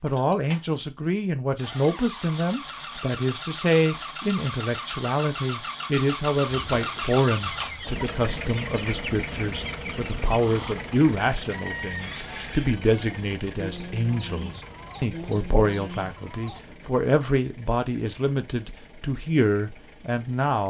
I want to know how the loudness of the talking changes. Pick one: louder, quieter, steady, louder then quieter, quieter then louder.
steady.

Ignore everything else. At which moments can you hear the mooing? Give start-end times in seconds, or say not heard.
not heard.